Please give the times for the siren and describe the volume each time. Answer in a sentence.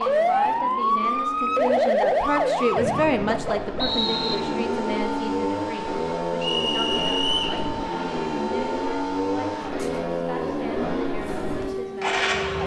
The siren can be heard from 0.0 to 12.6 s, getting quieter.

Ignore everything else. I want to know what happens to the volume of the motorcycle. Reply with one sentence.
The loudness of the motorcycle goes up.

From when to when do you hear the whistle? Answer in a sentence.
You can hear the whistle from 2.8 to 4.4 s and from 6.4 to 7.6 s.